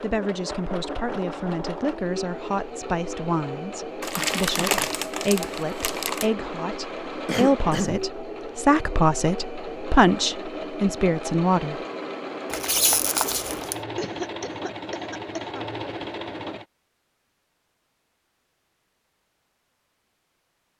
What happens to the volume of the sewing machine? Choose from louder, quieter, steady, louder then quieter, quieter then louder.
steady.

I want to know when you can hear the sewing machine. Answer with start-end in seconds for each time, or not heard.
0.0-16.6.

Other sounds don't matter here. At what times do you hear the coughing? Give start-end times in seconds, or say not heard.
4.2-4.9, 7.2-8.1, 13.9-15.7.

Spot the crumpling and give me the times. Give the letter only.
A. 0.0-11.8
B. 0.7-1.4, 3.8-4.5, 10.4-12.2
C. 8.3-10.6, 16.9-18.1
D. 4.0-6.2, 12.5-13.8
D.